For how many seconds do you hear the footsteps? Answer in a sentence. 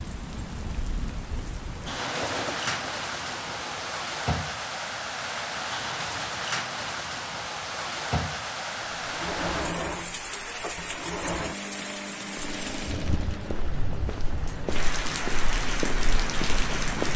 The footsteps can be heard for 5 seconds in total.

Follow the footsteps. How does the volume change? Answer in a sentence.
The loudness of the footsteps goes up.